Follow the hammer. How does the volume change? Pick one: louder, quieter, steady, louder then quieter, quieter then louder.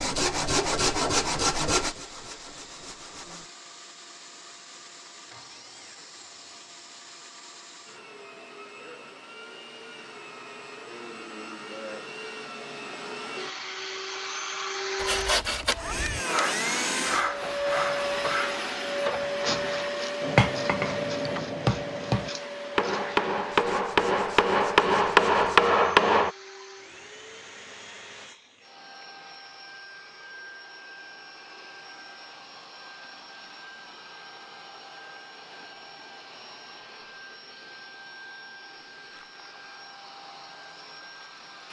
louder.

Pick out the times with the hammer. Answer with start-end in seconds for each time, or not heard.
20.2-26.3.